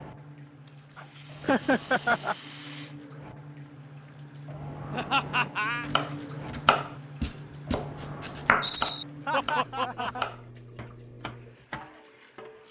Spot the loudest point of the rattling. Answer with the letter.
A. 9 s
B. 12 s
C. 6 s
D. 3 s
A.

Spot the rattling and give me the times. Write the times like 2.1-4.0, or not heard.
0.7-3.0, 8.6-9.1.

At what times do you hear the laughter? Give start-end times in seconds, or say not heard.
0.9-2.4, 4.9-5.9, 9.2-10.2.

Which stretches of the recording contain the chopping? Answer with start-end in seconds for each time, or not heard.
5.8-11.9.